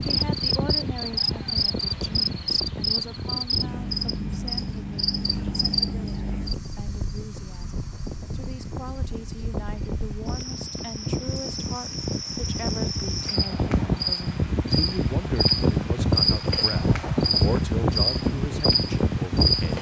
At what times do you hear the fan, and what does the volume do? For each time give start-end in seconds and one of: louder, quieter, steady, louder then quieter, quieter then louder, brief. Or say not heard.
0.0-19.7 quieter then louder.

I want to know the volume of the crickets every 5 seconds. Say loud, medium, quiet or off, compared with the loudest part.
loud, medium, medium, loud.